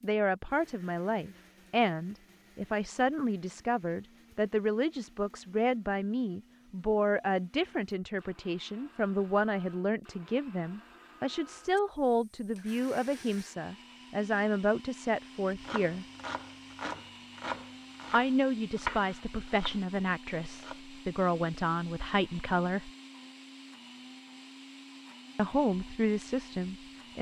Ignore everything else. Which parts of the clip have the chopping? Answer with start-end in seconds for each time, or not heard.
15.4-20.8.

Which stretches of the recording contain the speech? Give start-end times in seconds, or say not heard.
0.0-16.1, 18.1-22.9, 25.4-27.1.